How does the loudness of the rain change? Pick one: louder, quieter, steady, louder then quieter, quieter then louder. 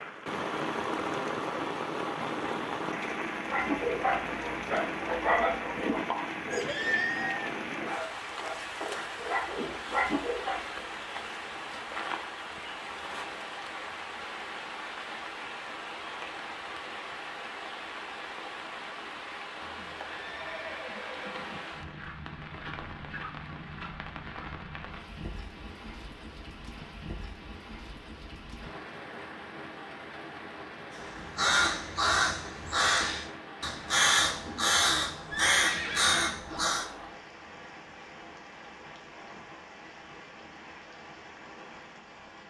quieter.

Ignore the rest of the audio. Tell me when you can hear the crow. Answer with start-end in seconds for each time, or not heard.
30.9-36.9.